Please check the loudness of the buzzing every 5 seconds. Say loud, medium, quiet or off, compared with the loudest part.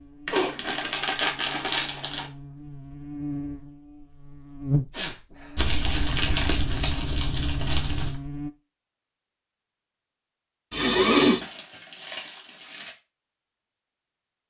loud, loud, off.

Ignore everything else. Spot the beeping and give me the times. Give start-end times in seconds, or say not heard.
not heard.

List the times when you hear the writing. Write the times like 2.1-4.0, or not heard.
not heard.